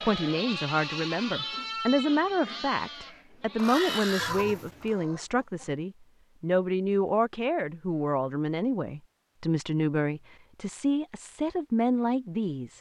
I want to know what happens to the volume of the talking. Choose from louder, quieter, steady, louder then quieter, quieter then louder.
steady.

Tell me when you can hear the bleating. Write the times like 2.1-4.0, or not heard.
0.0-5.0.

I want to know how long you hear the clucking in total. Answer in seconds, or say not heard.
2 s.